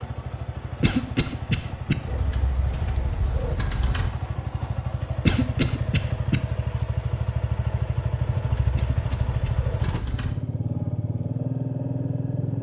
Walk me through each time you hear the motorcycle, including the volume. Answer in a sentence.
You can hear the motorcycle from 0.0 to 12.5 s, getting louder.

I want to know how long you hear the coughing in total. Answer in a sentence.
You can hear the coughing for 3 seconds altogether.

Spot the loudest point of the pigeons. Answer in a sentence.
The volume of the pigeons peaks at 4 seconds.